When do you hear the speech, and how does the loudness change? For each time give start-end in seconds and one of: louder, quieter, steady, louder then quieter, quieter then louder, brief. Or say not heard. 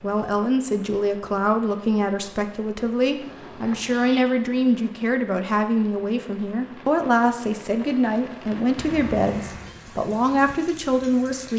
0.0-11.5 steady.